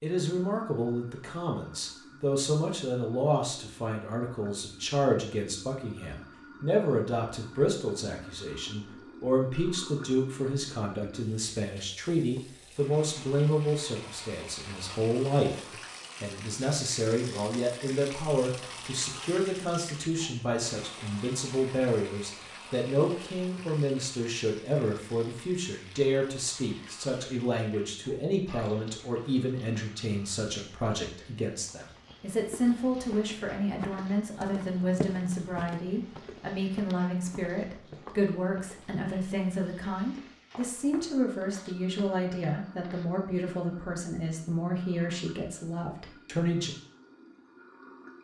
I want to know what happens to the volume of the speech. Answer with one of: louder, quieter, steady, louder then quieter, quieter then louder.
steady.